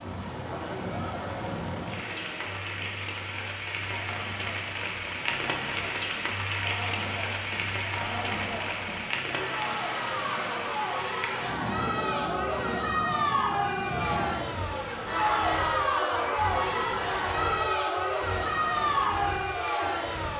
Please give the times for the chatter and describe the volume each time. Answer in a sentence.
You can hear the chatter from 0.3 to 20.3 s, getting louder.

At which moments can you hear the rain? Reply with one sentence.
You can hear the rain from 0.0 to 20.3 s.